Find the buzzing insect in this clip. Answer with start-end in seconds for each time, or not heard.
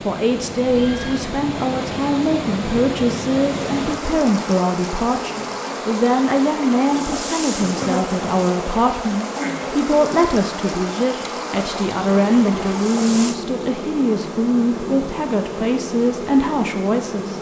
3.5-17.3.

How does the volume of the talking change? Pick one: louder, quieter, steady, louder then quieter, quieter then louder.
steady.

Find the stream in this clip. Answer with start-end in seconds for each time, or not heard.
0.0-13.4.